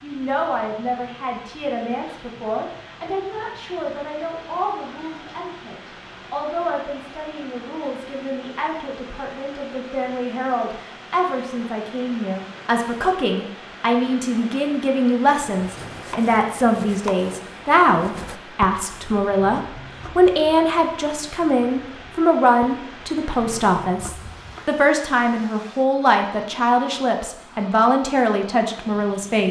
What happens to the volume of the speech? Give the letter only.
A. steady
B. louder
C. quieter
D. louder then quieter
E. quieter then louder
B.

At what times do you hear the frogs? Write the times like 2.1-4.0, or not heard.
not heard.